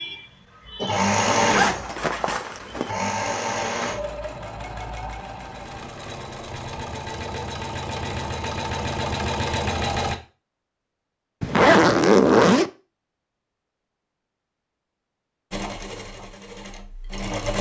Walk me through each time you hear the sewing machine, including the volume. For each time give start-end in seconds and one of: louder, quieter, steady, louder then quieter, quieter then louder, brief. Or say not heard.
0.0-10.2 quieter then louder
15.5-17.5 brief.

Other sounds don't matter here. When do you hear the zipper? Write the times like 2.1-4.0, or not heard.
1.3-3.0, 11.4-12.7.